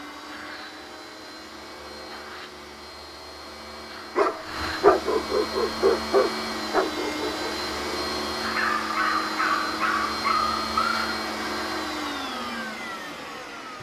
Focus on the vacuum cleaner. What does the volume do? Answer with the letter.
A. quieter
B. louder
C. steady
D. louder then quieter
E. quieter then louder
B.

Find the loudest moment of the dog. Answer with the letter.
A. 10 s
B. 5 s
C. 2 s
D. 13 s
B.